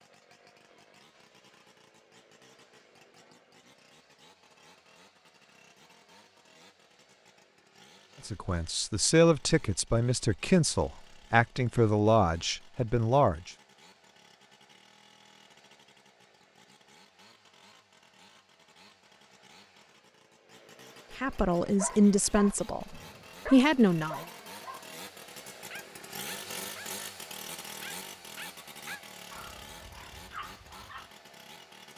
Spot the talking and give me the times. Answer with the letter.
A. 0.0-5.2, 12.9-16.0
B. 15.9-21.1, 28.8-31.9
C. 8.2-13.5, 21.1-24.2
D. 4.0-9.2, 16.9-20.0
C.